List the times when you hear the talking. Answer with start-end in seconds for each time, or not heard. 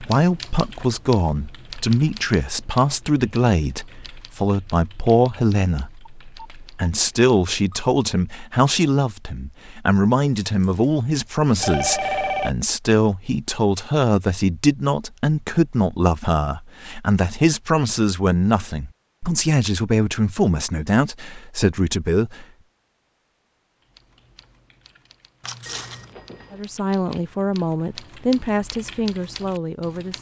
0.0-22.4, 26.5-30.1.